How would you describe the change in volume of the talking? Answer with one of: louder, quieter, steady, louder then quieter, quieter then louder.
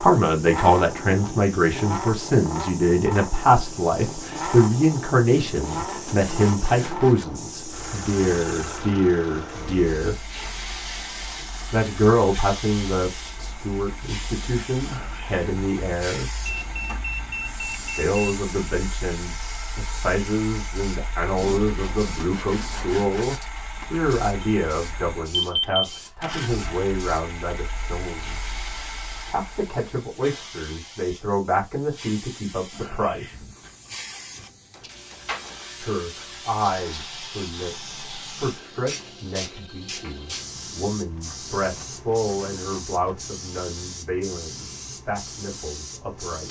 quieter.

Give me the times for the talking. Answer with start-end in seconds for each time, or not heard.
0.0-10.2, 11.7-16.3, 17.9-28.5, 29.3-33.5, 35.8-46.4.